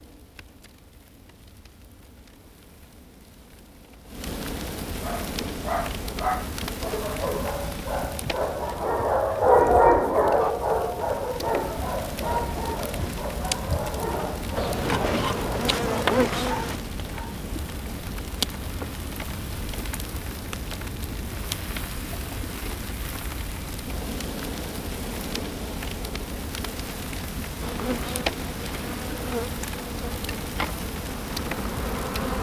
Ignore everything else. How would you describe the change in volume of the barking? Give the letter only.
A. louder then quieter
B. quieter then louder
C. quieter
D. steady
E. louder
A.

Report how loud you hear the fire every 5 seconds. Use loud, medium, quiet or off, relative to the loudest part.
medium, loud, loud, loud, loud, loud, loud.